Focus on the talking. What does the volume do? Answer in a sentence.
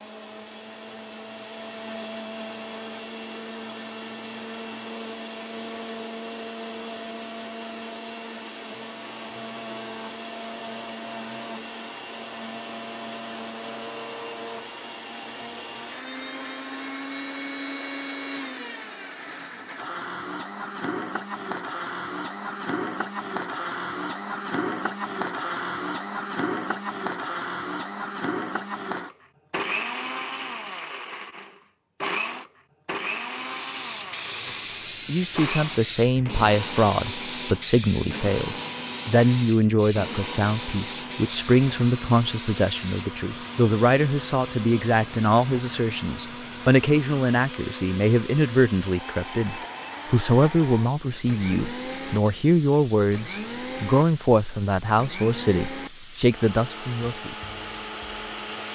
The loudness of the talking stays about the same.